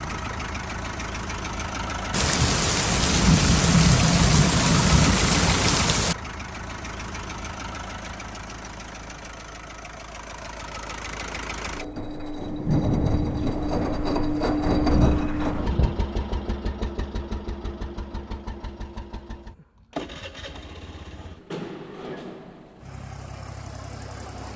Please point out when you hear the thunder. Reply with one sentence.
You can hear the thunder from 2.1 to 6.2 s and from 12.4 to 16.1 s.